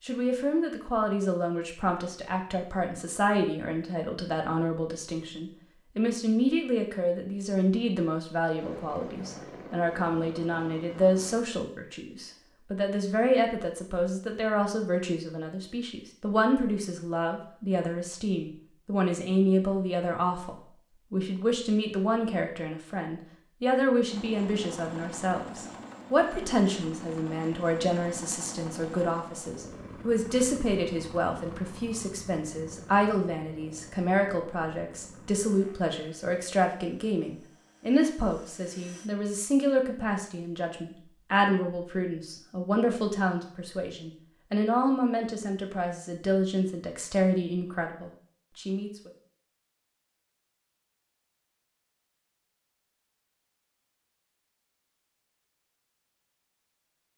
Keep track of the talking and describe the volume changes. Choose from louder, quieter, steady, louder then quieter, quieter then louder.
steady.